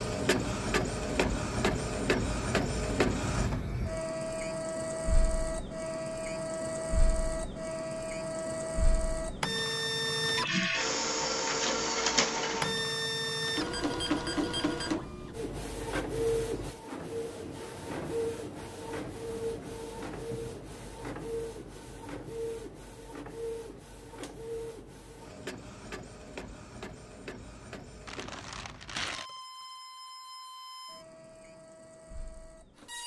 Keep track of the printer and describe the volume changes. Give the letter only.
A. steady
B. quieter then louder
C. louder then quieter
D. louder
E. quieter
E.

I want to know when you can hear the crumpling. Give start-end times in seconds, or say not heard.
28.1-29.3.